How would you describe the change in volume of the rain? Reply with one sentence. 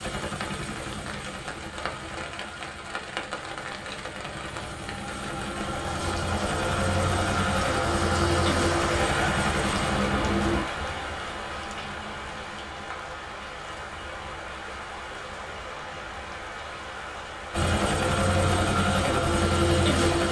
The loudness of the rain goes up, then down.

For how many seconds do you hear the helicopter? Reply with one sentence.
The helicopter can be heard for 13 seconds in total.